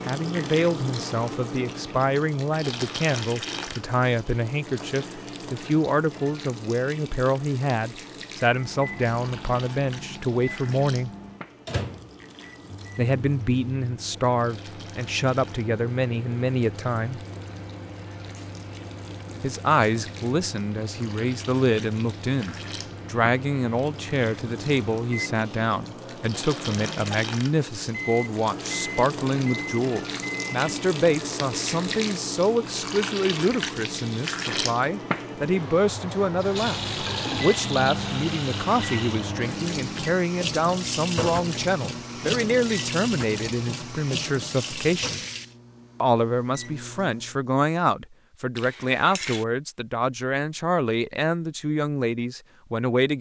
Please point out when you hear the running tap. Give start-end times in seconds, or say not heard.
0.0-45.5.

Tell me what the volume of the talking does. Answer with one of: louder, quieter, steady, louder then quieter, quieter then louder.
steady.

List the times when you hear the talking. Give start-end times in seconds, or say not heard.
0.1-11.1, 12.9-17.2, 19.4-45.2, 46.0-53.1.